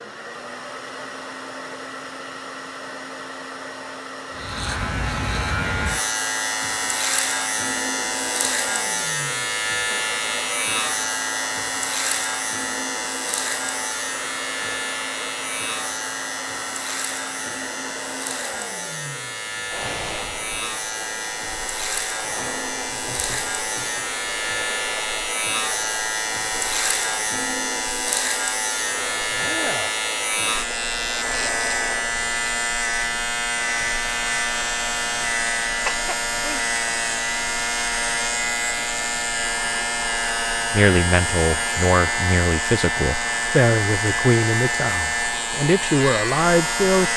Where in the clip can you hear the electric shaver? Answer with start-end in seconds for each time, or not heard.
4.3-47.1.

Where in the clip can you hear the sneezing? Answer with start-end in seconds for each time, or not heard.
35.9-36.6.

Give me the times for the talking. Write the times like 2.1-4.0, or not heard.
40.7-47.1.